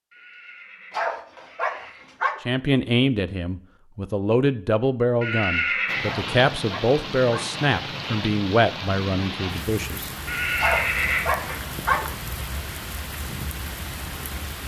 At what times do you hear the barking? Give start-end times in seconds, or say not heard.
0.9-2.4, 6.0-7.5, 10.6-12.2.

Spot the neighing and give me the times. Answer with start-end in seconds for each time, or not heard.
0.1-2.1, 5.2-6.2, 10.2-11.6.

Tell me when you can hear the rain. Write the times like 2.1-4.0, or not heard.
5.8-14.6.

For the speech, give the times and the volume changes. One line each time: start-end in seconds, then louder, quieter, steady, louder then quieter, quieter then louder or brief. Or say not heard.
2.5-10.1 steady.